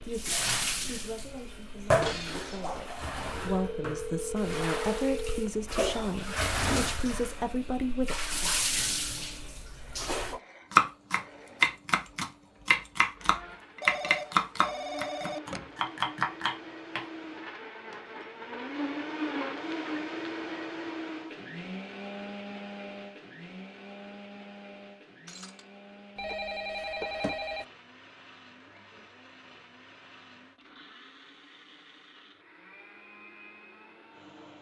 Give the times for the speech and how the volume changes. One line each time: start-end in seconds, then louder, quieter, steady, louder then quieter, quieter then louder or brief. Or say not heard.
0.0-8.6 louder.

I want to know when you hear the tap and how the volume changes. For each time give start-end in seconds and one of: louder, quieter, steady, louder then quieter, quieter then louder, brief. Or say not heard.
0.0-10.4 quieter then louder.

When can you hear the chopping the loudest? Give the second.
11 s.